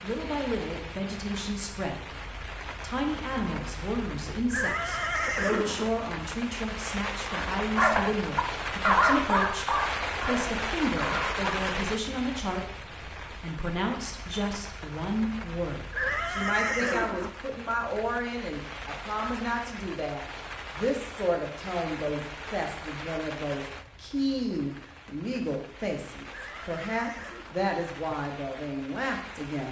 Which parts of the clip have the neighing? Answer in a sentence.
The neighing can be heard from 4.5 to 6.0 s, from 15.9 to 17.4 s and from 26.3 to 28.1 s.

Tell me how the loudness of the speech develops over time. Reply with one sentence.
The loudness of the speech stays about the same.